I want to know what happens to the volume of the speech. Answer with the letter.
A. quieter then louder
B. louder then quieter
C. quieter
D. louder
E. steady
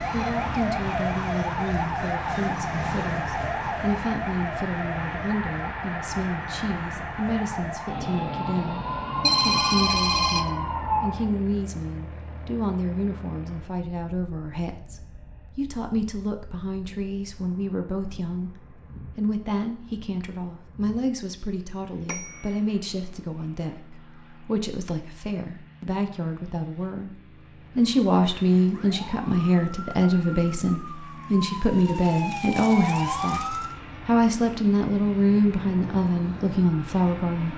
D.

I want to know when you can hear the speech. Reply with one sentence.
You can hear the speech from 0.1 to 37.5 s.